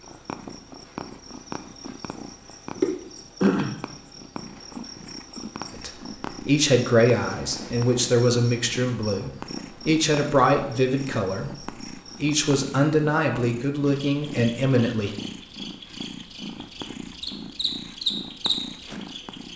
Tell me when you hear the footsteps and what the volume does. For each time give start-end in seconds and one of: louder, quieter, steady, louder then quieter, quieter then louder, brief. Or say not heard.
not heard.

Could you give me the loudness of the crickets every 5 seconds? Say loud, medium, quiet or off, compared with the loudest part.
loud, medium, quiet, loud.